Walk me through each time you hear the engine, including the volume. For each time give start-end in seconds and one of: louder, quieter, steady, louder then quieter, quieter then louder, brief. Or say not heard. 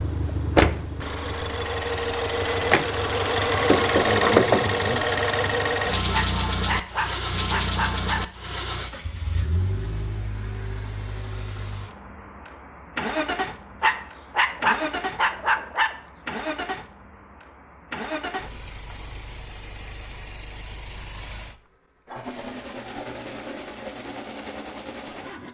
0.0-25.4 quieter.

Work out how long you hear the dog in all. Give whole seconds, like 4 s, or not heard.
4 s.